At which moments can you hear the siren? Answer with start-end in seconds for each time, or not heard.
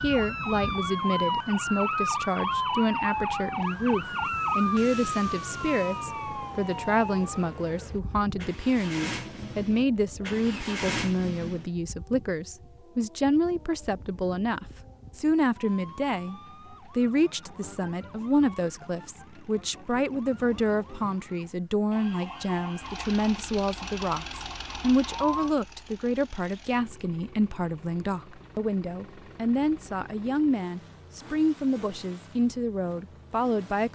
0.0-25.6.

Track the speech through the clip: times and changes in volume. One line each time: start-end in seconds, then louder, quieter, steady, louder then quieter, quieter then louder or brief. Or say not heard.
0.0-33.9 steady.